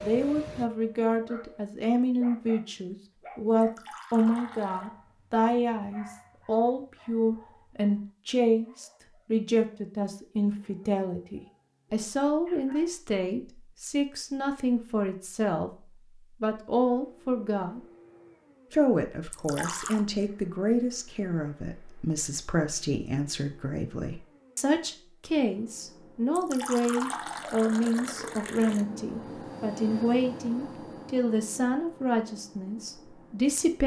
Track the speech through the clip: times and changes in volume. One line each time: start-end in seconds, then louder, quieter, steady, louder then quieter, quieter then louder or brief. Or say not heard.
0.0-15.7 steady
16.4-17.8 brief
18.7-33.8 steady.